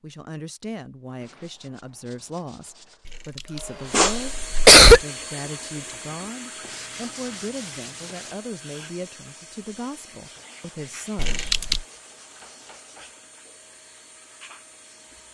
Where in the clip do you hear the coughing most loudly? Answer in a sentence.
The volume of the coughing peaks at 5 seconds.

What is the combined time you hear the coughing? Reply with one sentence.
The coughing can be heard for 2 seconds in total.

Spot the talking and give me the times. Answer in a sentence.
You can hear the talking from 0.0 to 11.4 s.